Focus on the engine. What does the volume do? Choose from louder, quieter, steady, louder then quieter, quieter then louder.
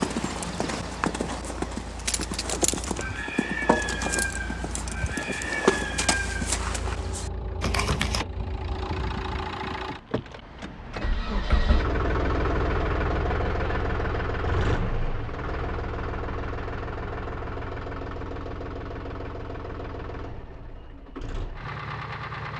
louder then quieter.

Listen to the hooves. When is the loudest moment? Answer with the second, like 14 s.
6 s.